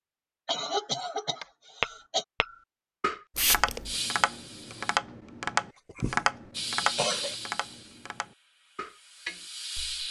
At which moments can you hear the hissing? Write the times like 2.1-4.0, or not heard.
3.4-5.0, 6.5-10.0.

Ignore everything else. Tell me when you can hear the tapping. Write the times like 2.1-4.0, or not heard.
1.4-9.9.